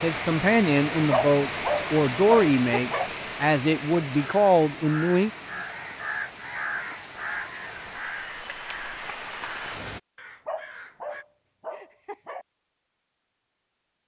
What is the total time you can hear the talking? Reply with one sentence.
You can hear the talking for 5 seconds altogether.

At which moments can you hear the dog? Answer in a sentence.
The dog can be heard from 1.1 to 3.1 s and from 10.4 to 12.4 s.